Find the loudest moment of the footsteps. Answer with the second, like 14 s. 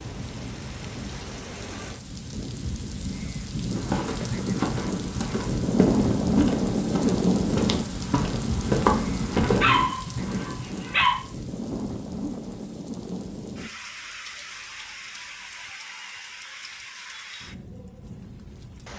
9 s.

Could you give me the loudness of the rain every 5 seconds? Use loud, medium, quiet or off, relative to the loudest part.
medium, loud, medium, quiet.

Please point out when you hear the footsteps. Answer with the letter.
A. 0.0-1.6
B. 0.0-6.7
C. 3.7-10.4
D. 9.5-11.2
C.